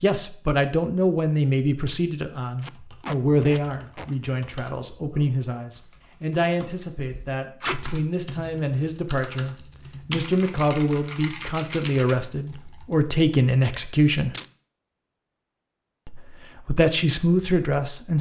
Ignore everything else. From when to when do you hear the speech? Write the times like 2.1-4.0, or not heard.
0.0-14.3, 16.1-18.1.